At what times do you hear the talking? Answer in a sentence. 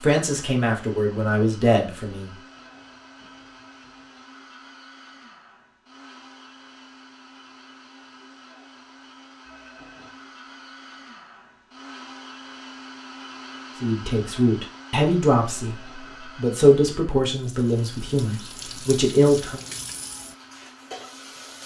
The talking can be heard from 0.0 to 2.3 s and from 13.8 to 19.6 s.